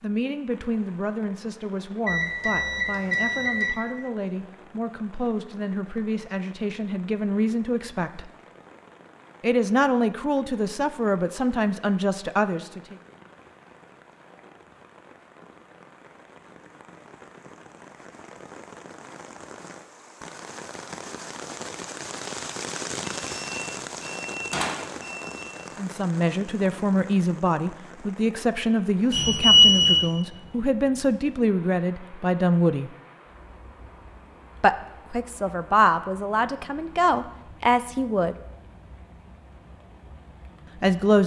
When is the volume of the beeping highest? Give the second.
30 s.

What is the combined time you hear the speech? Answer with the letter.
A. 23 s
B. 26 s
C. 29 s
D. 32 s
A.